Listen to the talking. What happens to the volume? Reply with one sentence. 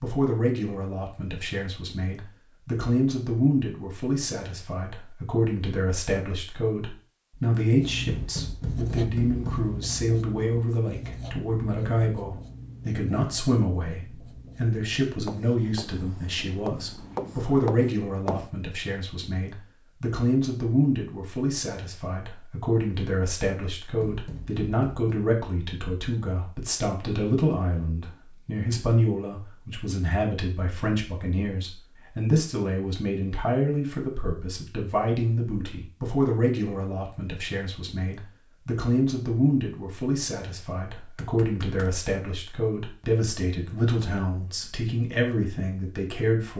The volume of the talking stays about the same.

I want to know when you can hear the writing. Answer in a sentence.
You can hear the writing from 7.8 to 18.5 s.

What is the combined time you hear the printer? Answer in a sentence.
You can't hear the printer here.